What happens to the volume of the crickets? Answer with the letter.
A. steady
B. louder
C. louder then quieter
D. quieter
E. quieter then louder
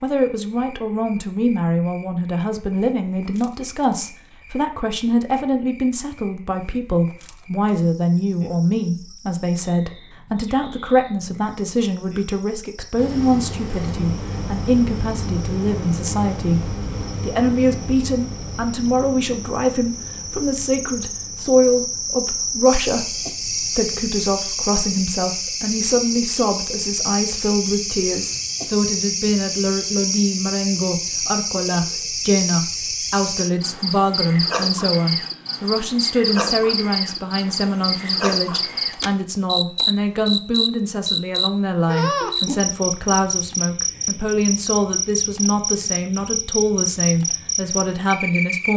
B.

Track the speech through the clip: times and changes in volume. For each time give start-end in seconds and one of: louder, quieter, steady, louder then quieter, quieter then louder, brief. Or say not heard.
0.0-48.7 steady.